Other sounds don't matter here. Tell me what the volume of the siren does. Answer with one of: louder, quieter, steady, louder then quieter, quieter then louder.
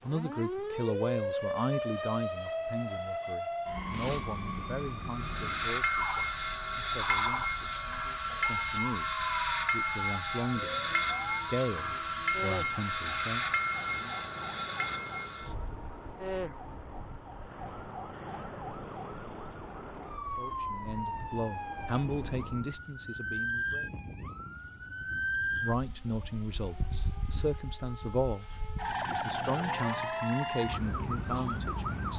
quieter then louder.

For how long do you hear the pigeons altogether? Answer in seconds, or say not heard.
not heard.